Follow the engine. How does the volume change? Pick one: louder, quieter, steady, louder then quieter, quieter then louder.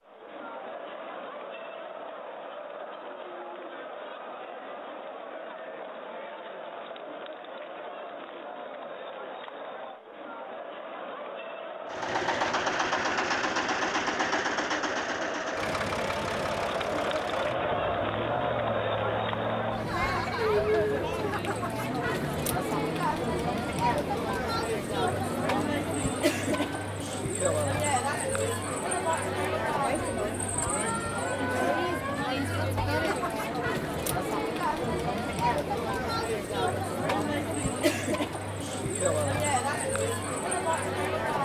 quieter.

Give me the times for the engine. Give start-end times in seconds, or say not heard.
11.8-27.0.